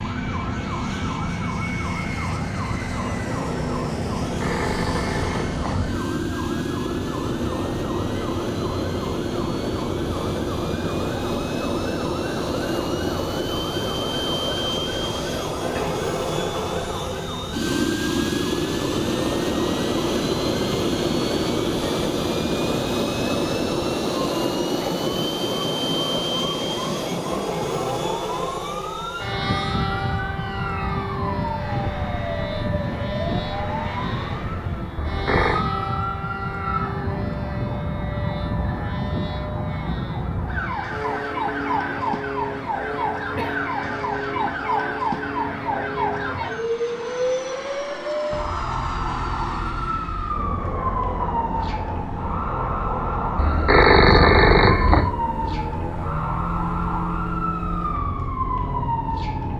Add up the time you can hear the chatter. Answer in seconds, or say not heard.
not heard.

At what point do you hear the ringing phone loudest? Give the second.
54 s.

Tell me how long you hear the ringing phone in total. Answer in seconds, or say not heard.
4 s.